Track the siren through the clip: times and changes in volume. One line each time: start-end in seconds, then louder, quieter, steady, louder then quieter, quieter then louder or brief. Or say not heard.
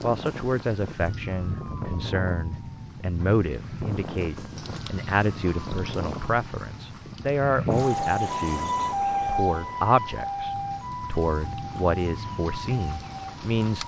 0.0-13.8 louder then quieter.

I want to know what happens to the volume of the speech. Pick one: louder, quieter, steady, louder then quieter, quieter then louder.
steady.